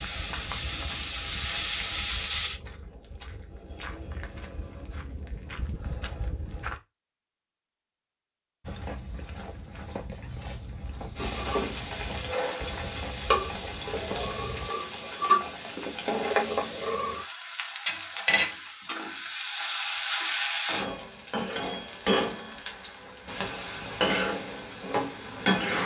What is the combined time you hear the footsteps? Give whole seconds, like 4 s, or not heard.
13 s.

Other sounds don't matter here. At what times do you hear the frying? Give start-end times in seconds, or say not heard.
0.0-2.6, 11.2-25.8.